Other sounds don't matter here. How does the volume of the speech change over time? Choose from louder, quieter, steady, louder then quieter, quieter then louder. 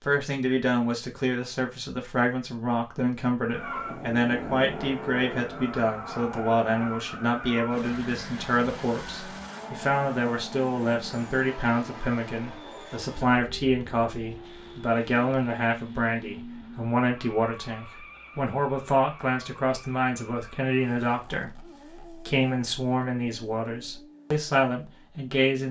steady.